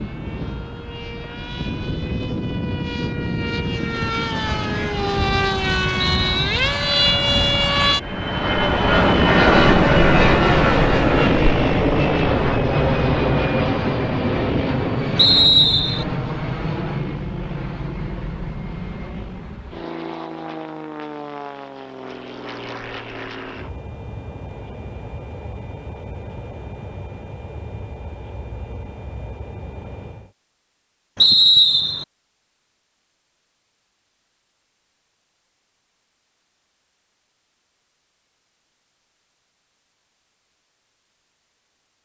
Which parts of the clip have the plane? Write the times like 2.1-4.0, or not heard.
0.0-30.3.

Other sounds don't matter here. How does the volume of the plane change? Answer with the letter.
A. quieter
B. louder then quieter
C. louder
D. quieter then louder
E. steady
B.